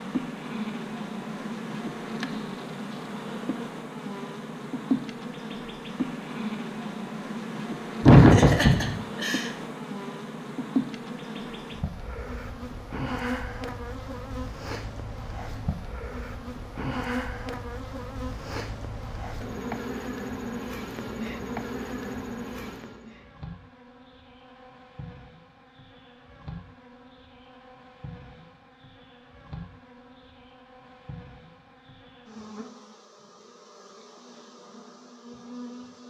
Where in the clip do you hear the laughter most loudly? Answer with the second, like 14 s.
8 s.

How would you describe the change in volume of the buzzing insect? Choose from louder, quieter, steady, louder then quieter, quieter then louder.
quieter.